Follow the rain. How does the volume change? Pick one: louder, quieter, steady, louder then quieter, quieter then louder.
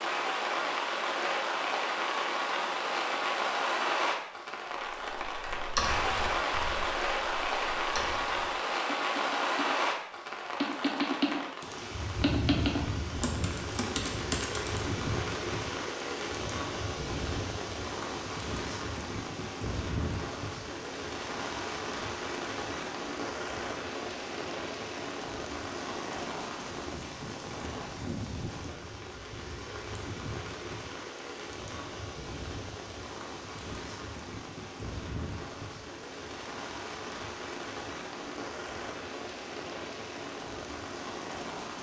quieter.